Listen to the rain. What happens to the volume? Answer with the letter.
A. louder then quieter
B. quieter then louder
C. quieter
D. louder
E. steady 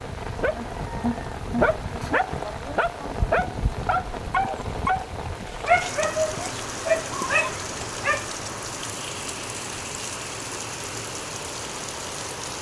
E.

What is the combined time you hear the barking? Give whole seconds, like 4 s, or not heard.
8 s.